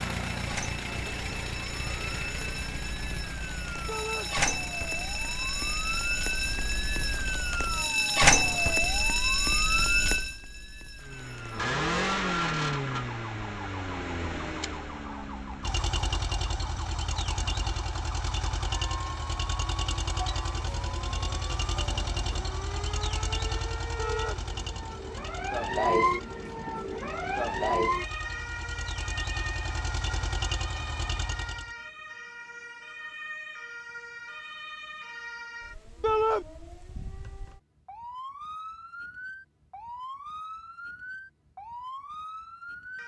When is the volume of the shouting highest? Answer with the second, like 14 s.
36 s.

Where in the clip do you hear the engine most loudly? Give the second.
12 s.